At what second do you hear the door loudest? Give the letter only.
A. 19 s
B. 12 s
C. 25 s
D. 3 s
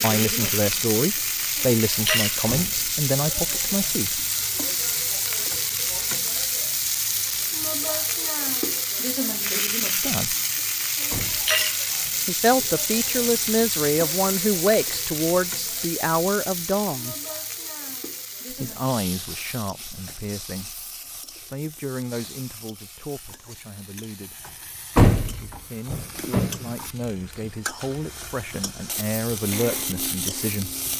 C.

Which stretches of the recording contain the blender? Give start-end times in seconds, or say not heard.
29.5-30.9.